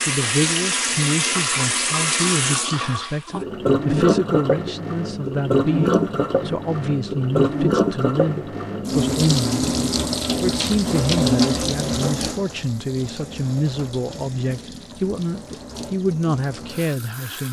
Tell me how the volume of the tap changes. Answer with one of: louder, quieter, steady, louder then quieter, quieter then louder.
quieter.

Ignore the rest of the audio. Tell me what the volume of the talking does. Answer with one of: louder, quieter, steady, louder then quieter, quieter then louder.
steady.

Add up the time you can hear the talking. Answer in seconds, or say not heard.
17 s.